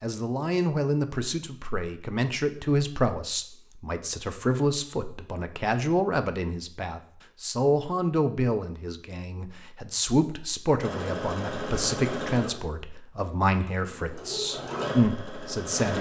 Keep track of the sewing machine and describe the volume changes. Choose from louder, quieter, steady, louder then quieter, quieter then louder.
quieter then louder.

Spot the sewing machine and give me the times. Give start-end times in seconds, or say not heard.
10.8-15.9.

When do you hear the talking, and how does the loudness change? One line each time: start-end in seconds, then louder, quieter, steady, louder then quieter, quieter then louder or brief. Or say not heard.
0.0-15.9 steady.